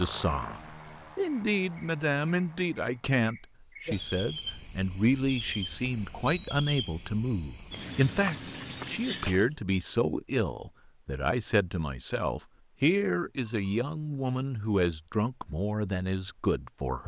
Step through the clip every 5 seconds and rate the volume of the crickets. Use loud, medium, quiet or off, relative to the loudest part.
loud, loud, off, off.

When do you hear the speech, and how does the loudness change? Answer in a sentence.
You can hear the speech from 0.0 to 17.0 s, at a steady volume.